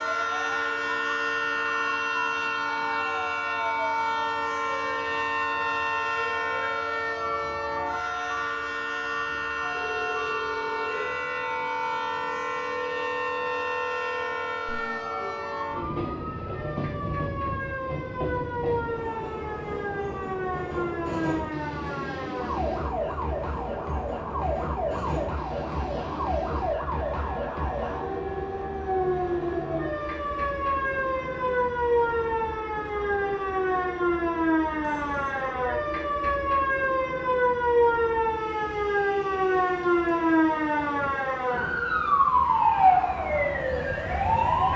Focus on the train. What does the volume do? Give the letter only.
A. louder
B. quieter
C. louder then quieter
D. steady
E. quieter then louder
B.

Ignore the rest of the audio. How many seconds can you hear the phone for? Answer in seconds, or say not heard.
2 s.